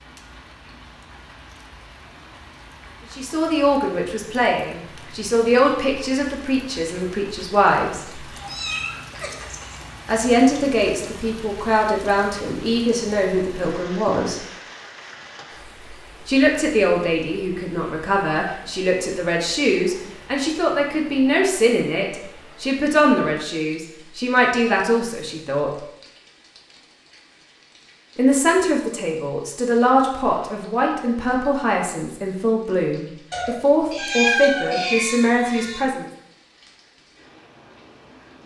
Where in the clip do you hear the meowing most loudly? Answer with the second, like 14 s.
34 s.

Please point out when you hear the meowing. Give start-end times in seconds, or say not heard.
8.3-9.8, 33.3-35.9.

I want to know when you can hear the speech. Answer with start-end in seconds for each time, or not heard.
3.1-8.2, 10.1-14.4, 16.2-25.8, 28.1-36.0.